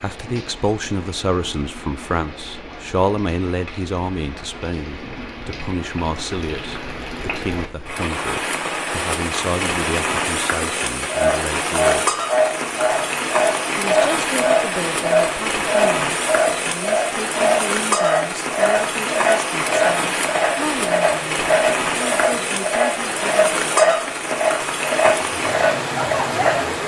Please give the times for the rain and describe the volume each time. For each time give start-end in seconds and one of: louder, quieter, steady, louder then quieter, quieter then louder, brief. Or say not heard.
0.0-26.8 louder.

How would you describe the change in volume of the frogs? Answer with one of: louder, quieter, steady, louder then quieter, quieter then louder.
steady.